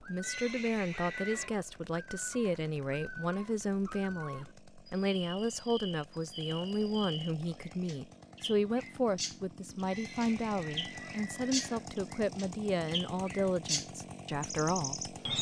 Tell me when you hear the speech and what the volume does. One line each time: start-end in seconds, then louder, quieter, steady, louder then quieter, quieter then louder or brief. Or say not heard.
0.0-15.2 steady.